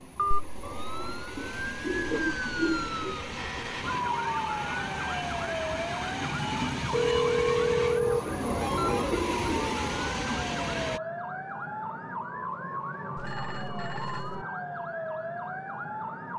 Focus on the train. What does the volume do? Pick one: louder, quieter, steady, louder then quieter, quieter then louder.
louder.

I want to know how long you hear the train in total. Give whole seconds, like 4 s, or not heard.
11 s.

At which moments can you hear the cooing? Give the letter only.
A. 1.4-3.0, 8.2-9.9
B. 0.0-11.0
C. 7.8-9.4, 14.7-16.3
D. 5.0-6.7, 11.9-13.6
A.